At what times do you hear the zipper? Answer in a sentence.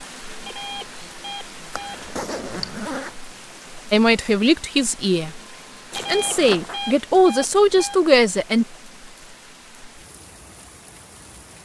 The zipper can be heard from 1.7 to 3.1 s and from 5.9 to 6.8 s.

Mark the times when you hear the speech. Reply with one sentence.
The speech can be heard from 3.9 to 5.3 s and from 6.0 to 8.7 s.